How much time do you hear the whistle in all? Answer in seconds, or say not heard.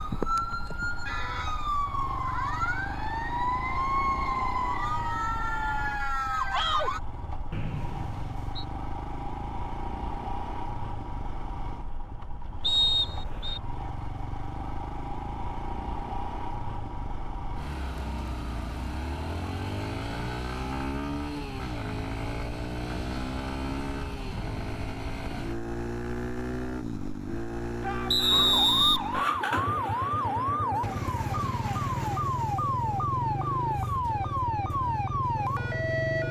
3 s.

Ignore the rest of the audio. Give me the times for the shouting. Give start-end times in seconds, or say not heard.
6.5-6.9, 27.8-28.5.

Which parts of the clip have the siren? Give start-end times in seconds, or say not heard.
0.0-7.0, 28.3-36.2.